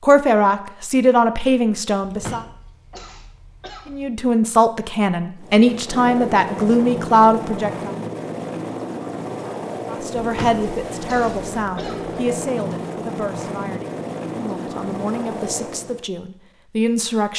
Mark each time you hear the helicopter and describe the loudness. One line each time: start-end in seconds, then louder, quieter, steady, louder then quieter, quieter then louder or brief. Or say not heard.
5.3-16.1 steady.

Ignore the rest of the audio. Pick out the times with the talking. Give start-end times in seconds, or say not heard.
0.0-2.5, 3.9-7.9, 9.9-17.3.